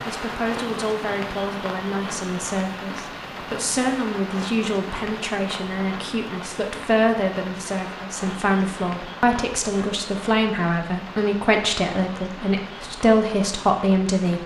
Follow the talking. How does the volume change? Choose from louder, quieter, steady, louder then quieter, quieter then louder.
louder.